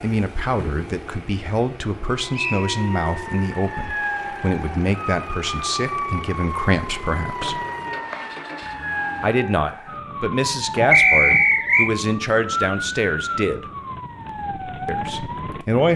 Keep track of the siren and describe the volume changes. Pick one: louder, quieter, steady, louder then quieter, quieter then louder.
steady.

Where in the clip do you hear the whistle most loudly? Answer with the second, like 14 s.
11 s.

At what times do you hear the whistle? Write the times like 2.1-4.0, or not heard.
2.3-2.8, 7.4-8.2, 10.9-11.9.